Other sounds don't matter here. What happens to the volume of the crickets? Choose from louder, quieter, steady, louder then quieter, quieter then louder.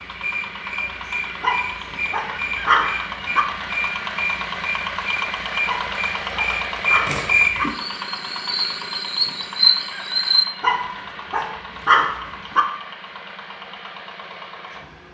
louder.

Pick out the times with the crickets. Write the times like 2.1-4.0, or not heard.
0.0-10.4.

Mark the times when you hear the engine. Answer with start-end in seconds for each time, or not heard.
0.0-15.0.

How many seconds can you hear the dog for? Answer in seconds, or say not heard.
6 s.